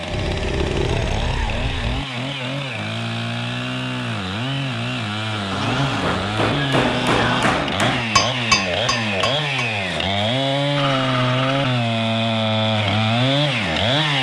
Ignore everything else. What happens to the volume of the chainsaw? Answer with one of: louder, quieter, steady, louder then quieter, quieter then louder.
louder.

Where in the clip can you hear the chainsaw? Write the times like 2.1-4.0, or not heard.
0.0-14.1.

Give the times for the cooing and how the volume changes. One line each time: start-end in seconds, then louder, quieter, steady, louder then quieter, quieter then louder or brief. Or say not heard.
not heard.